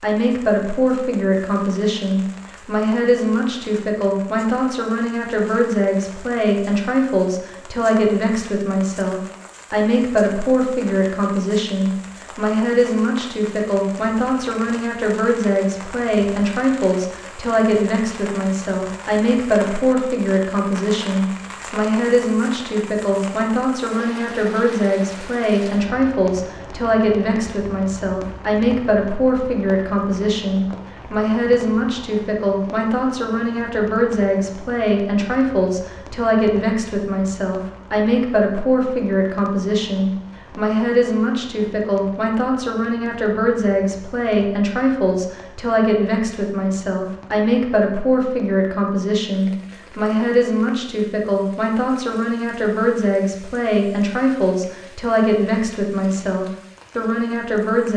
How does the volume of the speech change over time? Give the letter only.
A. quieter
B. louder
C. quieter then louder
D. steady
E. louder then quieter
D.